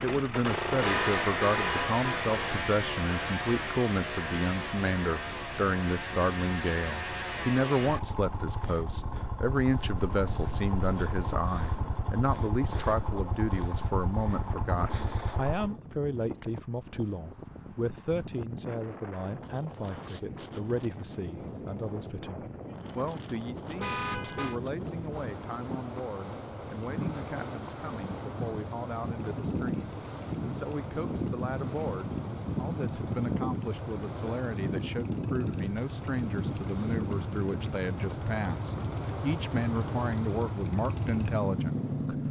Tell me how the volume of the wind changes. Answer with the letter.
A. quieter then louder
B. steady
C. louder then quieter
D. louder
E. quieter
D.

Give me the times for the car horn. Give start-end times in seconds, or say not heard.
0.8-2.4, 23.8-24.6.